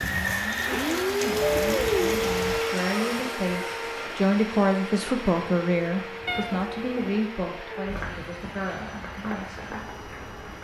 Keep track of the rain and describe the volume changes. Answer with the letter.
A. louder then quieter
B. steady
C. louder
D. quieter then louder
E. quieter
E.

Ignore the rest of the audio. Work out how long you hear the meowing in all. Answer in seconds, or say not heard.
2 s.